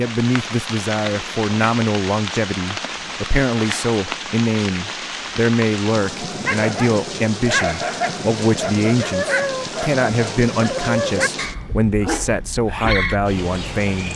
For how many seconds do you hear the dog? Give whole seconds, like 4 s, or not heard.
7 s.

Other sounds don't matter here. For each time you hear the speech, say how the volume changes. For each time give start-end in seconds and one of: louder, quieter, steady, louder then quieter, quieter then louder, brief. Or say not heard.
0.0-14.1 steady.